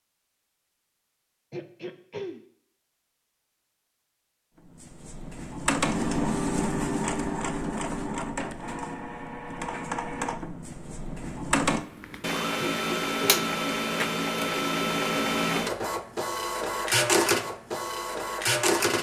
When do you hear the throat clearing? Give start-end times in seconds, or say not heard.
1.5-2.4, 12.6-13.5.